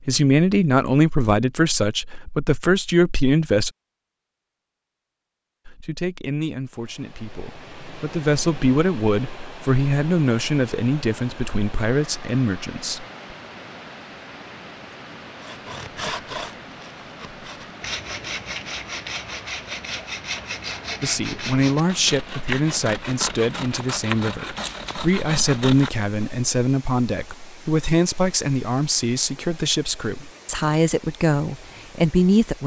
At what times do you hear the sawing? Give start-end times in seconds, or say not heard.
15.4-26.3.